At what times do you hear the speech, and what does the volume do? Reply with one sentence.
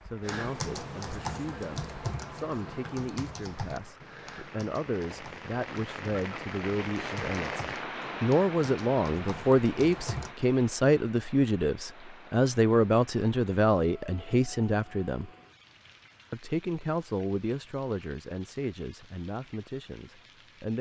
You can hear the speech from 0.0 to 15.3 s, getting louder; and from 16.3 to 20.7 s, getting quieter.